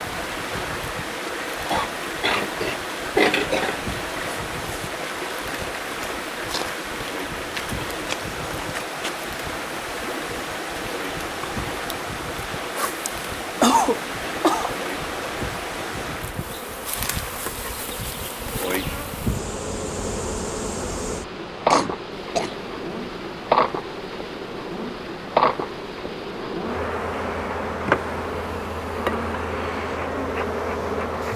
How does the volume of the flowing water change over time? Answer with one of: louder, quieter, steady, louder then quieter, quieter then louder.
quieter.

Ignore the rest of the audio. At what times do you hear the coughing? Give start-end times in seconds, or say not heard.
1.7-3.8, 13.1-14.8, 21.7-22.6.